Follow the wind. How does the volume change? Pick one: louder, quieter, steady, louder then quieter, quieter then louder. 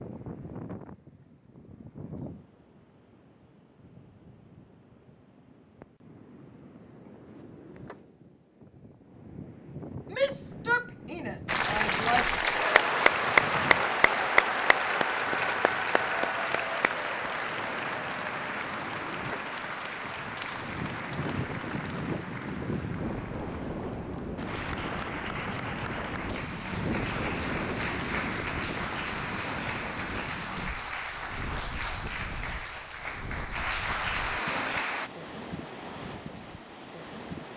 louder then quieter.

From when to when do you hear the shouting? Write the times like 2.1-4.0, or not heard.
10.1-12.3.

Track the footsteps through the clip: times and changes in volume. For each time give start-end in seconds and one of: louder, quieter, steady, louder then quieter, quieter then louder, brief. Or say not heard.
not heard.